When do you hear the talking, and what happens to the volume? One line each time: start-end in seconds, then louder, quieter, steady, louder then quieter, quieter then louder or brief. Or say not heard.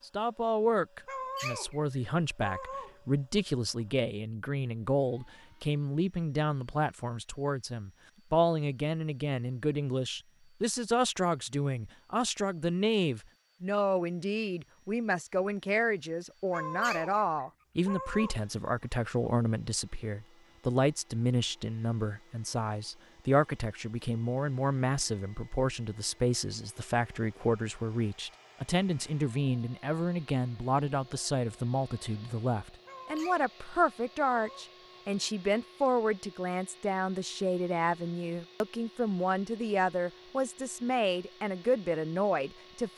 0.0-42.9 steady.